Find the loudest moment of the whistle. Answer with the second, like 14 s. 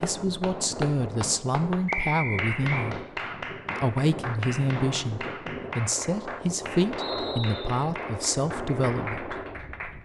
2 s.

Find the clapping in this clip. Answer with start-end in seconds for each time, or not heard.
0.0-10.0.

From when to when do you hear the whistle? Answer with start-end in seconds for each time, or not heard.
1.9-2.9, 7.0-7.8.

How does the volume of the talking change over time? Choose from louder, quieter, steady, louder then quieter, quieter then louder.
steady.